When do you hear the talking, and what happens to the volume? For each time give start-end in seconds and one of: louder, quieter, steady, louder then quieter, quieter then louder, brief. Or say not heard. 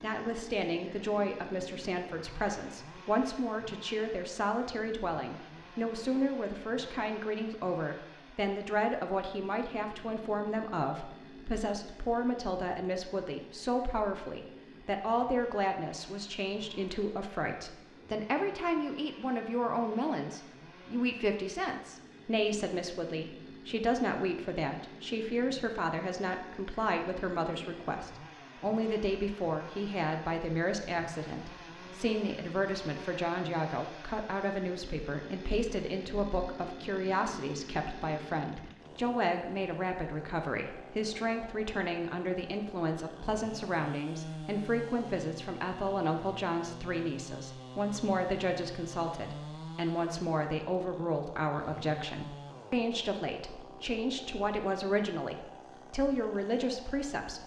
0.0-57.4 steady.